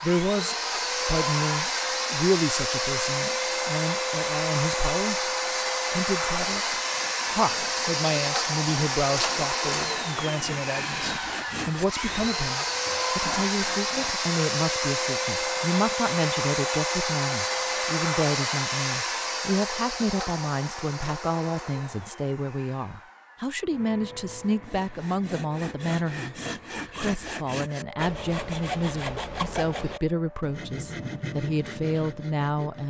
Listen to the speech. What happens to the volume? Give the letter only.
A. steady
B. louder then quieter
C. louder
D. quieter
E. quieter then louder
A.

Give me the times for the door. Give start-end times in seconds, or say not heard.
not heard.